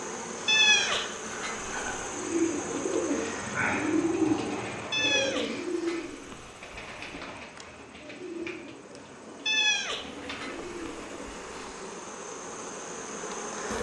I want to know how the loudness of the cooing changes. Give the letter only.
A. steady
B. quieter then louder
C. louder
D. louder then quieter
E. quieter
E.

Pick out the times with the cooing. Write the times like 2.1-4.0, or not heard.
2.1-11.5.